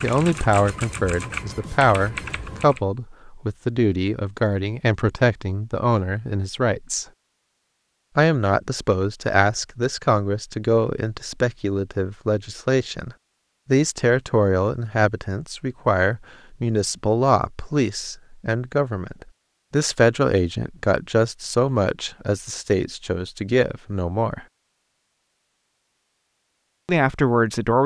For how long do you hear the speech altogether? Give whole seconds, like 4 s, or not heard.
24 s.